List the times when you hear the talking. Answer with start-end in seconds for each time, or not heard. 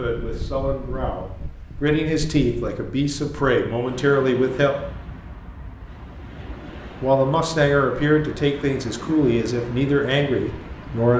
0.0-4.8, 7.0-11.1.